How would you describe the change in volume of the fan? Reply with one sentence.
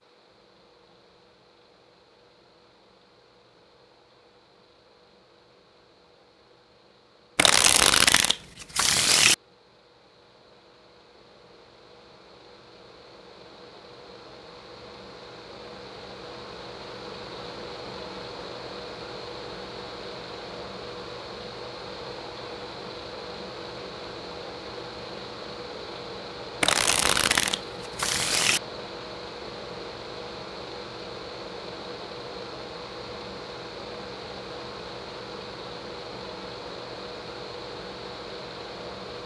The volume of the fan goes up.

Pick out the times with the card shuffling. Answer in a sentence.
The card shuffling can be heard from 7.3 to 9.3 s and from 26.6 to 28.6 s.